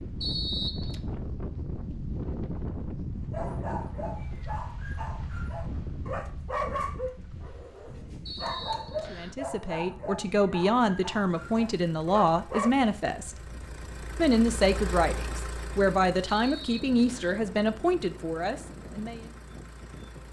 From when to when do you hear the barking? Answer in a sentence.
You can hear the barking from 3.3 to 12.7 s.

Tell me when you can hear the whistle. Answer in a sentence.
You can hear the whistle from 0.2 to 1.0 s, from 8.2 to 9.3 s and from 16.3 to 17.4 s.